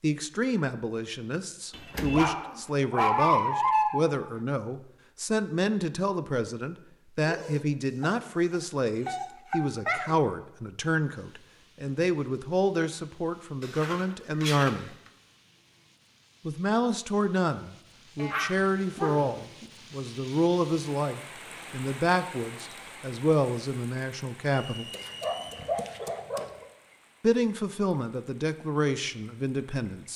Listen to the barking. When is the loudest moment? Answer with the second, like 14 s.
3 s.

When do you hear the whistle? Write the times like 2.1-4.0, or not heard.
24.6-25.7.